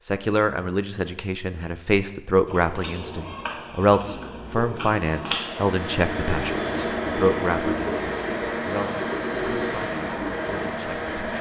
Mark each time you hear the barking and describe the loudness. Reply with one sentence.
You can't hear the barking here.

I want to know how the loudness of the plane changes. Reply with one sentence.
The loudness of the plane stays about the same.